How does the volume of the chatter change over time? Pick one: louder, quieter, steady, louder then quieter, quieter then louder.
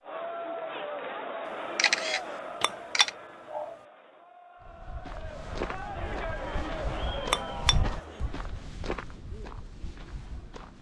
quieter then louder.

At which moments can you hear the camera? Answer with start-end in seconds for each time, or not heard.
1.8-3.1.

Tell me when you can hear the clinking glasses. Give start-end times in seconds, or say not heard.
2.6-3.8, 7.3-7.8.